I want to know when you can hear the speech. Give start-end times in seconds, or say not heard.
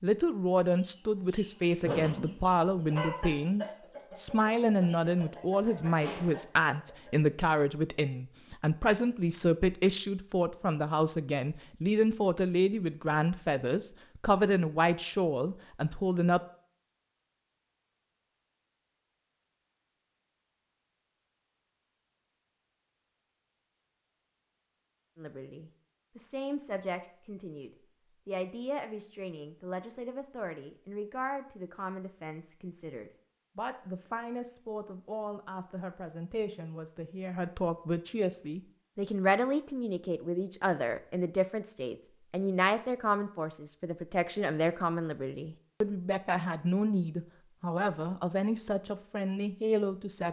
0.0-16.4, 25.1-50.2.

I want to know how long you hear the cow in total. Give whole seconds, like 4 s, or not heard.
not heard.